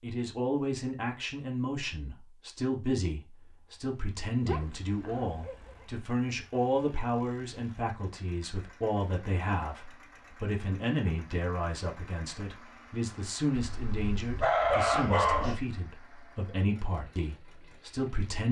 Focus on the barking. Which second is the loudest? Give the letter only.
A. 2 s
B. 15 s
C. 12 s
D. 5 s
B.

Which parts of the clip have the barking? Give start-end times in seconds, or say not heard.
4.5-5.8, 13.6-15.6.